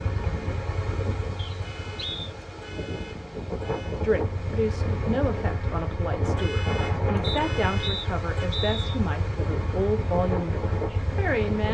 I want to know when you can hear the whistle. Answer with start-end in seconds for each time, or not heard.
1.4-2.3, 7.2-8.9.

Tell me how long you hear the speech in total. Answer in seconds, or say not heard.
8 s.